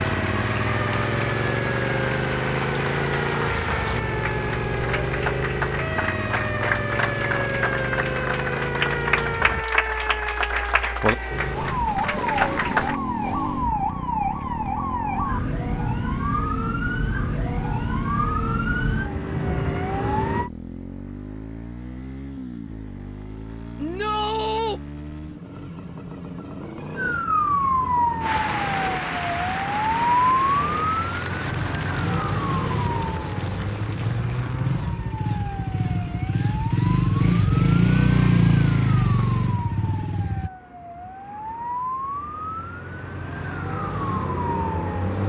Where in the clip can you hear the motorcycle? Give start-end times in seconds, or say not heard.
0.0-9.7, 11.3-40.5.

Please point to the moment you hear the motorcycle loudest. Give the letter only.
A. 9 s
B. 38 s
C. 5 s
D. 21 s
B.